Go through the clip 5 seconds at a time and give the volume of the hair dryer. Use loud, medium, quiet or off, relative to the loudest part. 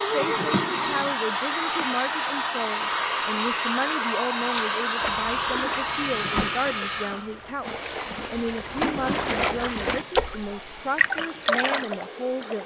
loud, loud, quiet.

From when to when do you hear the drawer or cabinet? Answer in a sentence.
You can hear the drawer or cabinet from 0.1 to 1.1 s, from 6.0 to 6.7 s and from 8.7 to 10.5 s.